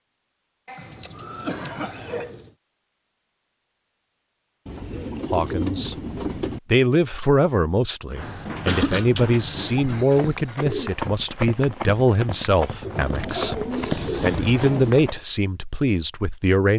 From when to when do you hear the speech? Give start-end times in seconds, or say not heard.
5.3-6.0, 6.7-16.7.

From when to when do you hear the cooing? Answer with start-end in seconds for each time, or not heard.
0.8-2.5, 4.7-6.6, 8.8-11.0, 12.8-15.1.